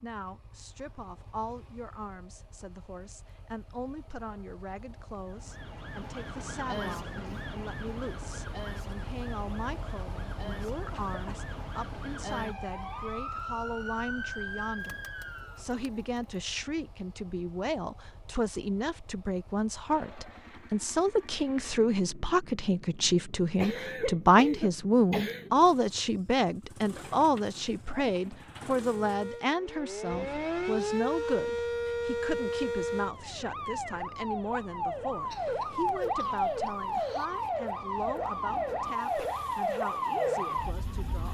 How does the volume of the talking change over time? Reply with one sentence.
The loudness of the talking goes up, then down.